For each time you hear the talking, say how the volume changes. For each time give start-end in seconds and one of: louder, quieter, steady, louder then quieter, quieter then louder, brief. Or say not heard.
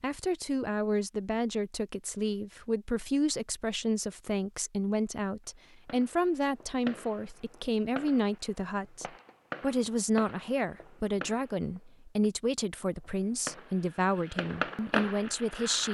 0.0-15.8 steady.